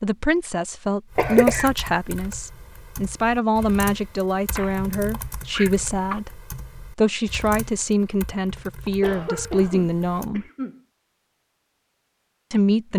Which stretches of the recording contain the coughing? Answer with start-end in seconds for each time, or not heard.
1.1-1.7, 4.5-6.2, 9.0-10.8.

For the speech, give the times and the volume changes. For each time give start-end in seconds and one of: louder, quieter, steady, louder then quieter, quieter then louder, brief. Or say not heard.
0.0-10.4 steady
12.5-12.9 brief.